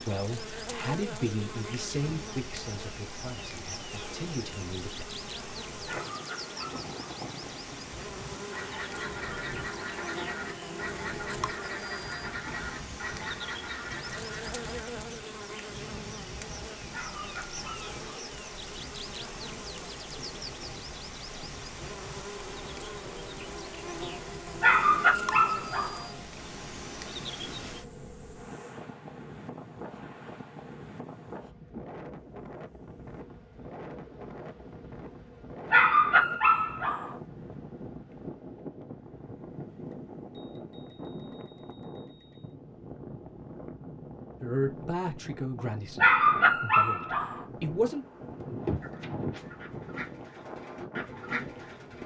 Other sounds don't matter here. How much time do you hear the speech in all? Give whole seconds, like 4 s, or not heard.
9 s.